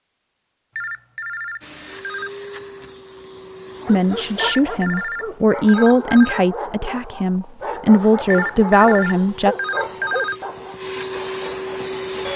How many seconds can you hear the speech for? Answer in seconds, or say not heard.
6 s.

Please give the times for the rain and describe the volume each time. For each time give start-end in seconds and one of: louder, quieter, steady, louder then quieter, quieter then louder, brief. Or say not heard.
not heard.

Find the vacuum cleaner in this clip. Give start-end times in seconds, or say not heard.
1.6-4.5, 8.9-12.3.